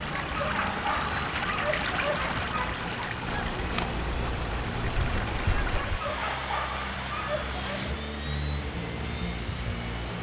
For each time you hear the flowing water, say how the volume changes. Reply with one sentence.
You can hear the flowing water from 0.0 to 10.1 s, getting quieter.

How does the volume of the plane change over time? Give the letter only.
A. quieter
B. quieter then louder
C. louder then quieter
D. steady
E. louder
E.